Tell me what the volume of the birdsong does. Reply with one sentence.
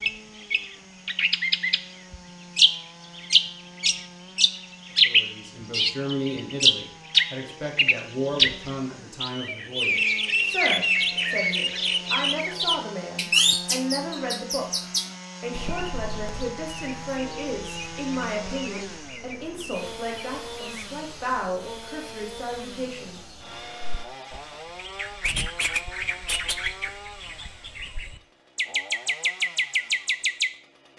The volume of the birdsong goes down, then up.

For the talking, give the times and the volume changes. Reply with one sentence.
You can hear the talking from 5.0 to 23.2 s, at a steady volume.